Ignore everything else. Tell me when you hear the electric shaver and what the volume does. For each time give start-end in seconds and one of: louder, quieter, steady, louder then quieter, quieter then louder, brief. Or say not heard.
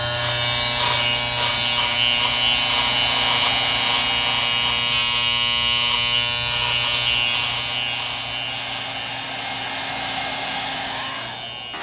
0.0-11.7 quieter.